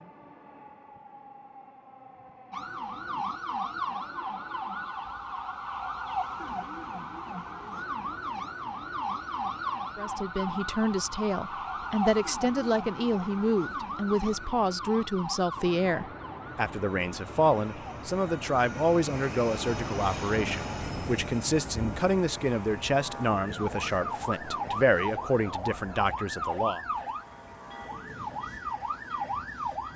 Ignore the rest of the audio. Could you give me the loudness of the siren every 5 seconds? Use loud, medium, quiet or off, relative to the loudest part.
loud, loud, loud, medium, loud, loud.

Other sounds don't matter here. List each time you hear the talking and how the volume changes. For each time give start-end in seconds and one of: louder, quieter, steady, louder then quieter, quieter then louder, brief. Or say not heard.
9.9-26.9 steady.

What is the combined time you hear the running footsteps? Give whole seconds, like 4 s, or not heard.
not heard.